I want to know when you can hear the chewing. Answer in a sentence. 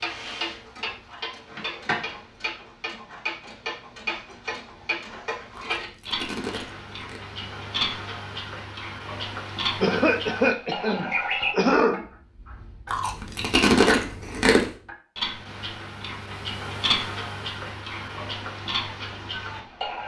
You can hear the chewing from 5.5 to 7.2 s and from 12.9 to 14.7 s.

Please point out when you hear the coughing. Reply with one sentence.
The coughing can be heard from 9.8 to 12.1 s.